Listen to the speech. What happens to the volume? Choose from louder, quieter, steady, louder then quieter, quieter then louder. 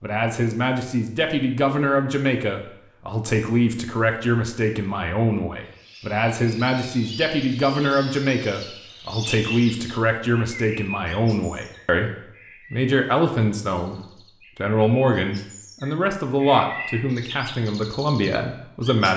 steady.